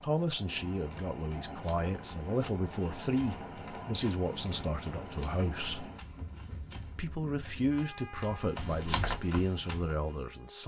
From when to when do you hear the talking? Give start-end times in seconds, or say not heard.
0.0-5.9, 7.0-10.6.